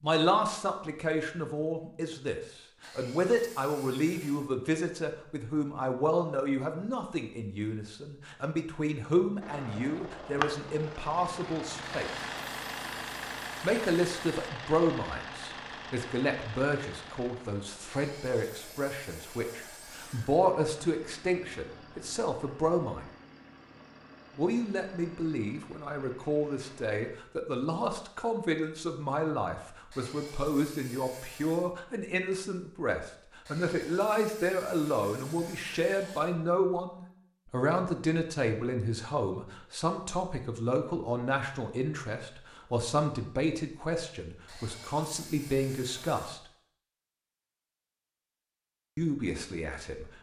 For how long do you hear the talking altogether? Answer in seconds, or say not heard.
45 s.